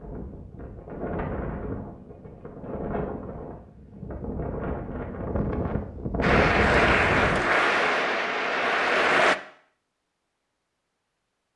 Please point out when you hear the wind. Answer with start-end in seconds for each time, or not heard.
0.0-7.5.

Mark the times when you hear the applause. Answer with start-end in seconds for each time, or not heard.
6.2-9.3.